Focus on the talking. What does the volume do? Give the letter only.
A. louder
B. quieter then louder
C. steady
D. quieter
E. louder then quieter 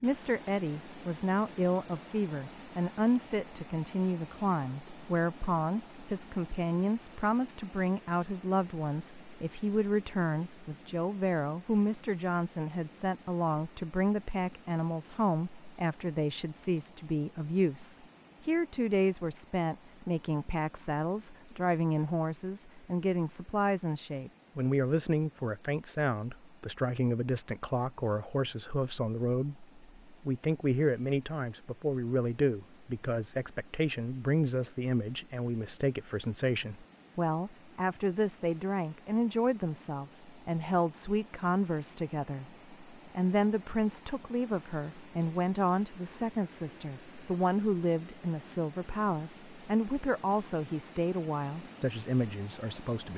C.